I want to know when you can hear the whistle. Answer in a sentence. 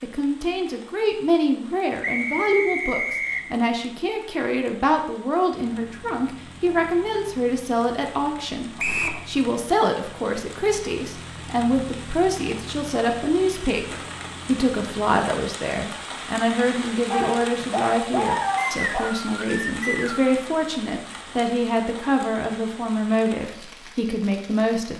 The whistle can be heard from 2.0 to 3.4 s, from 8.8 to 9.2 s and from 18.6 to 20.4 s.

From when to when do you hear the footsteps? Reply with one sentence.
The footsteps can't be heard in this clip.